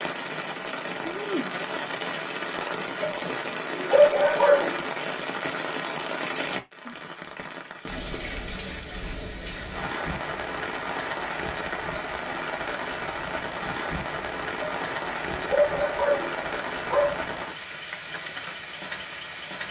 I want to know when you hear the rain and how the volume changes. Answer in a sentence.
The rain can be heard from 0.0 to 19.6 s, at a steady volume.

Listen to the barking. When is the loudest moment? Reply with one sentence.
The volume of the barking peaks at 4 seconds.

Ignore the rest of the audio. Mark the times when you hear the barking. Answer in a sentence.
You can hear the barking from 3.0 to 4.8 s and from 14.6 to 17.2 s.